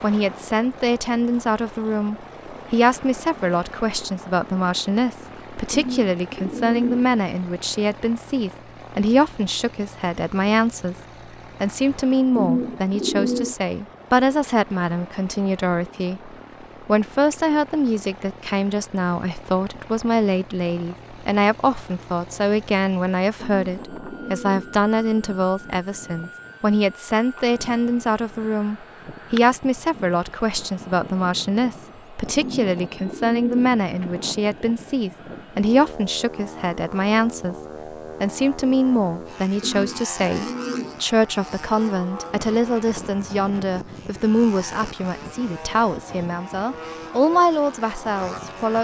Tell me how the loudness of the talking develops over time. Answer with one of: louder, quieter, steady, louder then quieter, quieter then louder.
steady.